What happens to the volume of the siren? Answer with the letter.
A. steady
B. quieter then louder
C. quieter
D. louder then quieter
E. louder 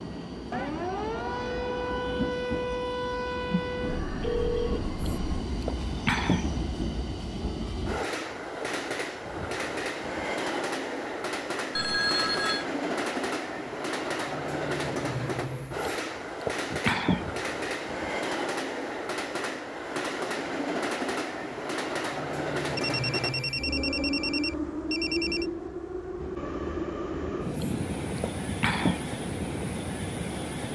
C.